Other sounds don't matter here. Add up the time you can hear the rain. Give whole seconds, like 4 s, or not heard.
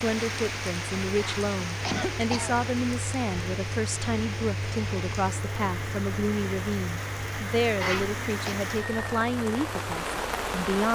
11 s.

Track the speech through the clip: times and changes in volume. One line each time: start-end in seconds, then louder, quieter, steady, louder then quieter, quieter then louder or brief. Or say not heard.
0.0-10.9 steady.